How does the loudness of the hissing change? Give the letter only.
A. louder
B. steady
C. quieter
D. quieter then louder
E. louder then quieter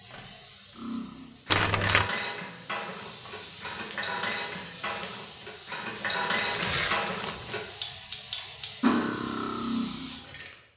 A.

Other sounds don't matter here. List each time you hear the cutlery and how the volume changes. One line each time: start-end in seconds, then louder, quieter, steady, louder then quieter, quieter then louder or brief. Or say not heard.
0.8-10.1 louder.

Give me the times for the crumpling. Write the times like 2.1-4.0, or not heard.
1.5-2.1, 6.5-7.5.